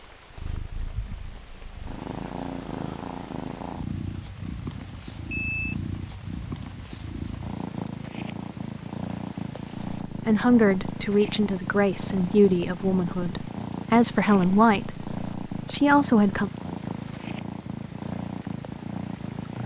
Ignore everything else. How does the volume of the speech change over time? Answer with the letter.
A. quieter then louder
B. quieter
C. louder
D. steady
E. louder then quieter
A.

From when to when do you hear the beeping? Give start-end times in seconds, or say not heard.
5.2-5.8.